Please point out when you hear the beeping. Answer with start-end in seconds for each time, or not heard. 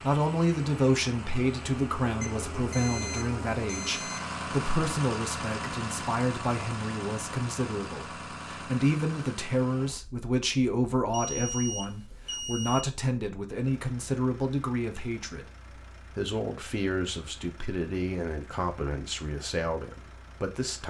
2.2-4.2, 11.1-12.8.